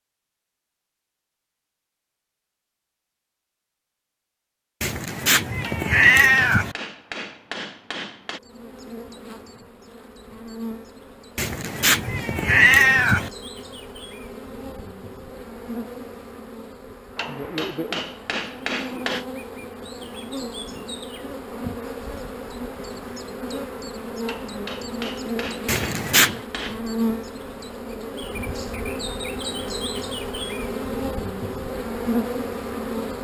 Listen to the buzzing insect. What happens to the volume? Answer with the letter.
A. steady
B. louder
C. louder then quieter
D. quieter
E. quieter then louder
B.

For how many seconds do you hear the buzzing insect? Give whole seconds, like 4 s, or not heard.
25 s.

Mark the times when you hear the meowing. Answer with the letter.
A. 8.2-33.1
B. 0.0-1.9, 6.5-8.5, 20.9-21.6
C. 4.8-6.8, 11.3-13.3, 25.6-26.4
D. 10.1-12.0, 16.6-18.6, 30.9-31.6
C.